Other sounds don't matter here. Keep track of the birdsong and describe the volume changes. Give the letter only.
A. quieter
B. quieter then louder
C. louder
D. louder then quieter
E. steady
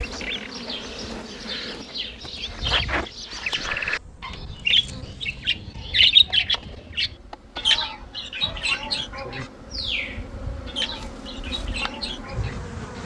D.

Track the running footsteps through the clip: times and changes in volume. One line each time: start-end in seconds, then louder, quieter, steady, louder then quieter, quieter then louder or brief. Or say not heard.
not heard.